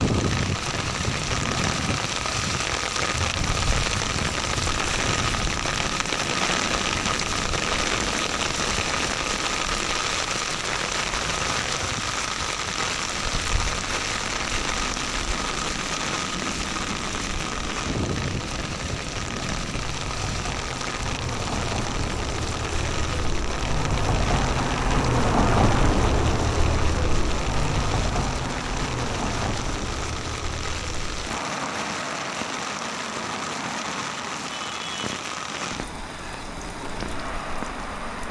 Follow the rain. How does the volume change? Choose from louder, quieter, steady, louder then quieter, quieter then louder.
quieter.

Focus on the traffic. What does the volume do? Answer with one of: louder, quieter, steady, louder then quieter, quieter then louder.
louder then quieter.